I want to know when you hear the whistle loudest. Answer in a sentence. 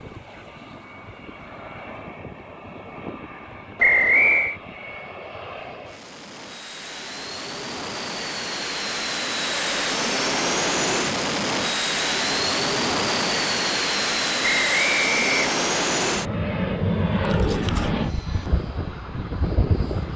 The volume of the whistle peaks at 4 seconds.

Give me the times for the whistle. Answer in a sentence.
You can hear the whistle from 3.8 to 4.5 s and from 14.4 to 15.4 s.